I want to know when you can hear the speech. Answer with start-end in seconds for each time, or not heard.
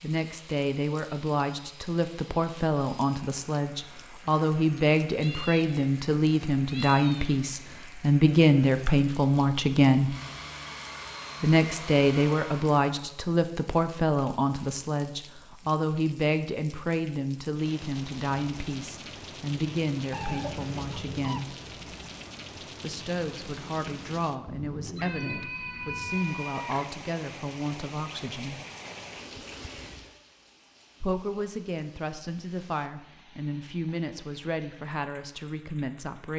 0.0-10.2, 11.4-21.6, 22.8-28.6, 31.0-36.3.